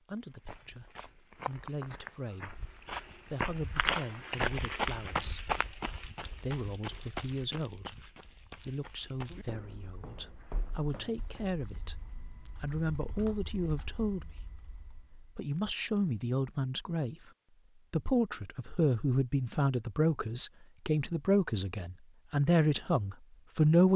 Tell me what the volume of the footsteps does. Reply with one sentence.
The loudness of the footsteps goes up, then down.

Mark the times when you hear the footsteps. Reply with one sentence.
You can hear the footsteps from 0.1 to 11.4 s.